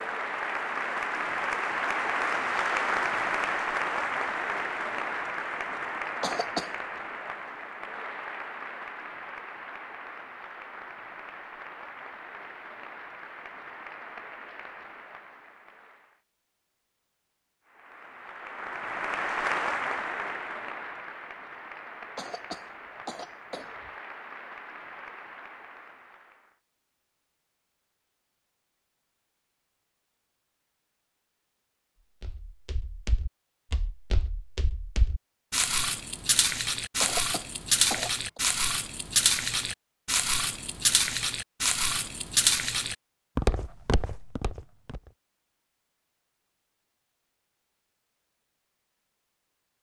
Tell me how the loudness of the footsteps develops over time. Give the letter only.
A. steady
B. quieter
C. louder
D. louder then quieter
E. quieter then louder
C.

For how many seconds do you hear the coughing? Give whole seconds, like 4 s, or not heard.
4 s.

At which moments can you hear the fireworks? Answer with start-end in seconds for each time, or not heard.
not heard.